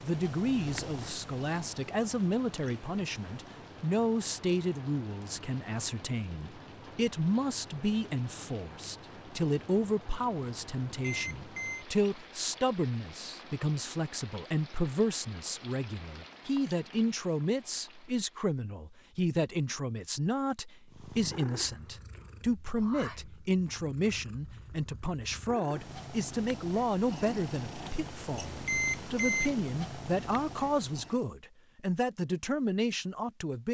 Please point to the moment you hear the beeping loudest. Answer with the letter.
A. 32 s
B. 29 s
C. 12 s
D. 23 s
B.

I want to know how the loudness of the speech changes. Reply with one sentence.
The volume of the speech stays about the same.